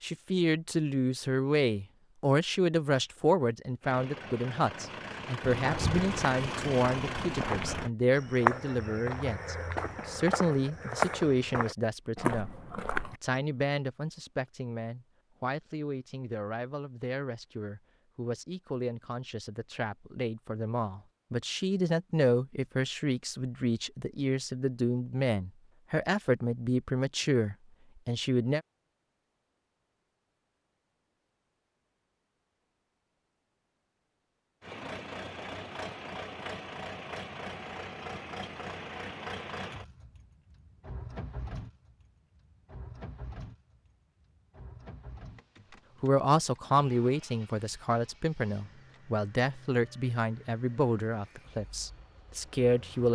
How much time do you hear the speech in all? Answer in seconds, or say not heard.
35 s.